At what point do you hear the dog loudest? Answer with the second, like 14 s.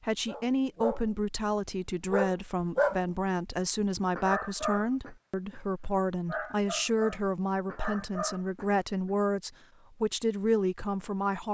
3 s.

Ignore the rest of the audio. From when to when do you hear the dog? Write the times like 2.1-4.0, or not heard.
0.2-9.1.